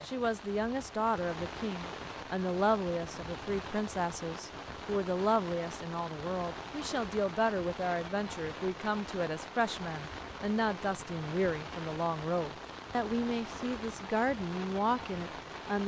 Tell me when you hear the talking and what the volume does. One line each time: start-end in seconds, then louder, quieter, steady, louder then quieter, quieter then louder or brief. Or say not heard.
0.0-15.8 steady.